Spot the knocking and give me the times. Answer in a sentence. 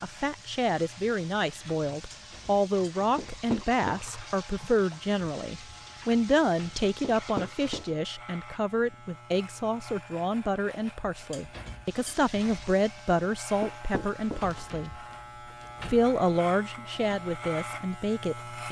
You can hear the knocking from 3.1 to 4.0 s, from 7.0 to 7.8 s and from 13.6 to 14.4 s.